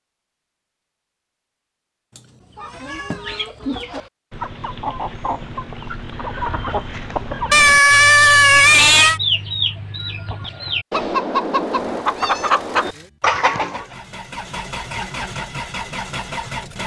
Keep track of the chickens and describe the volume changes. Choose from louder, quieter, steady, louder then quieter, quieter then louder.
louder.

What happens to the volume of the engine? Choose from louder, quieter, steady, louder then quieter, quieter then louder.
louder.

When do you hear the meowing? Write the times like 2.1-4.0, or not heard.
2.1-3.4, 7.5-9.2, 12.0-12.6.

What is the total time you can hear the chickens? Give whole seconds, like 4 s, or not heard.
11 s.